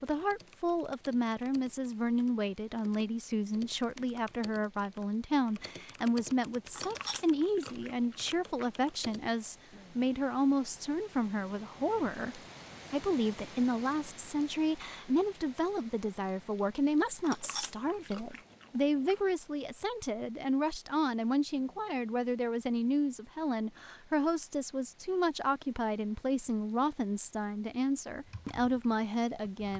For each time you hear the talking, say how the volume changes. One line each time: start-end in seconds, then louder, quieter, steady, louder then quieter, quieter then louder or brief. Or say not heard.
0.0-29.7 steady.